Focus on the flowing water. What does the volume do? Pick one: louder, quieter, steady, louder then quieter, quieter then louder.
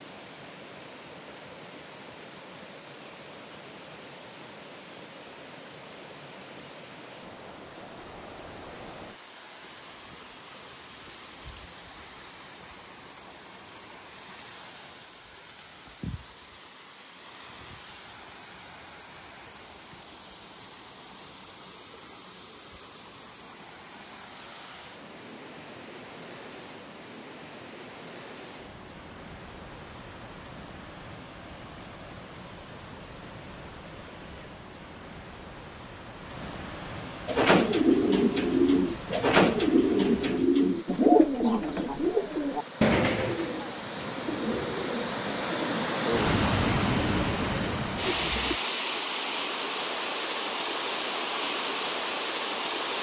louder.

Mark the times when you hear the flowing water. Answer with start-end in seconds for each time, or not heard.
0.0-52.9.